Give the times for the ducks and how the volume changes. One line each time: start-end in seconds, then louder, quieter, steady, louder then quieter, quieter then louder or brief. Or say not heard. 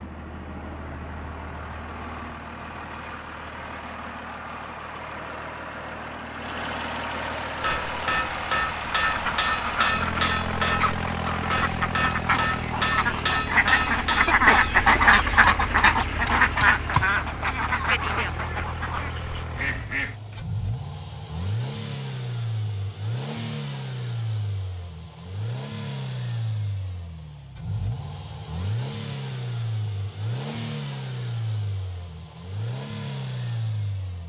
9.1-20.2 louder then quieter.